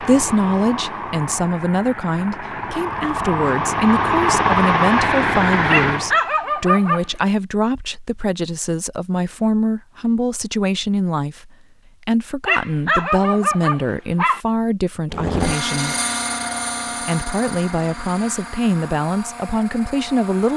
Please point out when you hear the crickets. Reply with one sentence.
You can't hear the crickets here.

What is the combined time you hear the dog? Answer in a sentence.
The dog can be heard for 3 seconds in total.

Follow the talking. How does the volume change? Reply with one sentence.
The loudness of the talking stays about the same.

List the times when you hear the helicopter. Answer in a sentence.
The helicopter can be heard from 0.0 to 6.2 s and from 15.1 to 20.5 s.